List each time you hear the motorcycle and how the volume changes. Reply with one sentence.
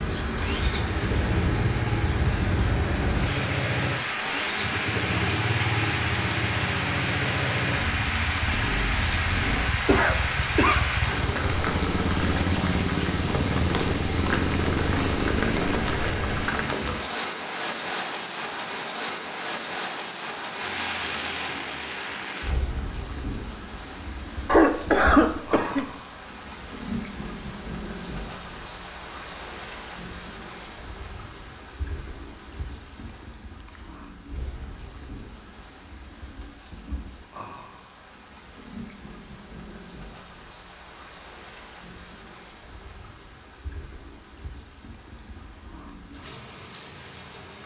You can hear the motorcycle from 0.0 to 16.5 s, at a steady volume.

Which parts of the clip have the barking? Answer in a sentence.
The barking can't be heard in this clip.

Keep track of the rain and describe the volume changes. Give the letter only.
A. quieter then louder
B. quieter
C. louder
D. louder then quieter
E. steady
B.